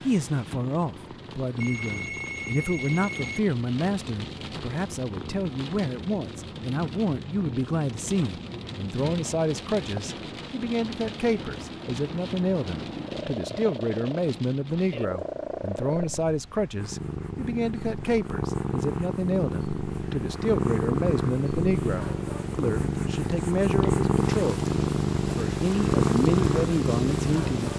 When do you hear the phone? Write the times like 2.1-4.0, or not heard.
1.6-3.4.